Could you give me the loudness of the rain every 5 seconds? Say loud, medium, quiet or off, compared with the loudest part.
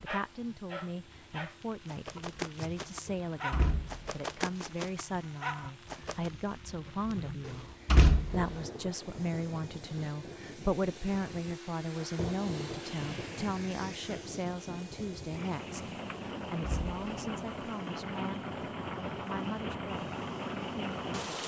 quiet, medium, medium, loud, loud.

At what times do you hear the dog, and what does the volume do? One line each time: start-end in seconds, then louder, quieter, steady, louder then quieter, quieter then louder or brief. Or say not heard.
0.1-6.3 steady.